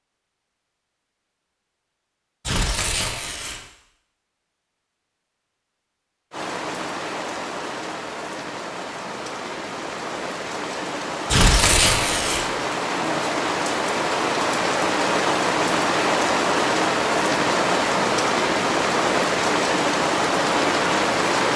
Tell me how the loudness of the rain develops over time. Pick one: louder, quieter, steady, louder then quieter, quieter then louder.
louder.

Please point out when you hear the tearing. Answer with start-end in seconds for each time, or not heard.
2.5-3.6, 11.2-12.4.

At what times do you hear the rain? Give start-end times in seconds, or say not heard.
6.3-21.5.